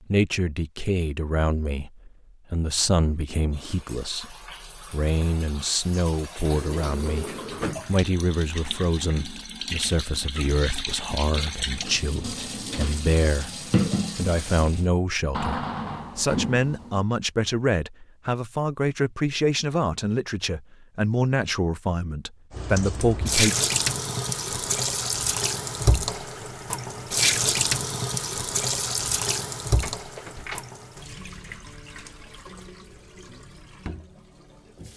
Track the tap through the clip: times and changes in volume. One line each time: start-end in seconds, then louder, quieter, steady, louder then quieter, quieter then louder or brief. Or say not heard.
3.5-14.8 louder
22.5-34.9 quieter.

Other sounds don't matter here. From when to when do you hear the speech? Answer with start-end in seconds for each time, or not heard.
0.1-23.6.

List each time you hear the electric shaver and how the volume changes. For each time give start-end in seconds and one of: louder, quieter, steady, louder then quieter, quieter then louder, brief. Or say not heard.
not heard.